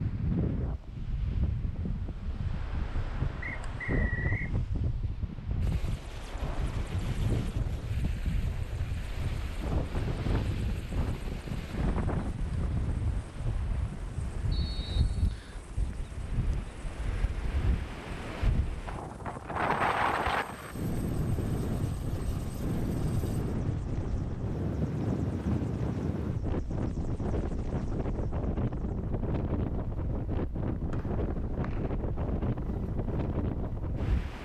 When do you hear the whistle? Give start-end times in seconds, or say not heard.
3.4-4.5, 14.5-15.7, 30.9-31.9.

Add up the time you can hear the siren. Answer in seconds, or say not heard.
not heard.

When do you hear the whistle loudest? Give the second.
4 s.